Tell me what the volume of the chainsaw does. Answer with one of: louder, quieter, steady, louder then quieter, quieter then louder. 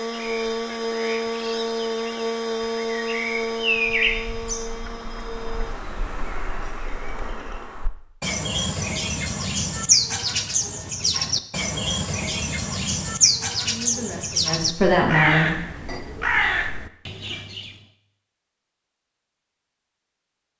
quieter.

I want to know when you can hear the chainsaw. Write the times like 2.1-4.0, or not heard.
0.0-7.8.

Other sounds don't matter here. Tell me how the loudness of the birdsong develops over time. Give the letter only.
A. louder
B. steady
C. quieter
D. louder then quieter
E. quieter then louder
A.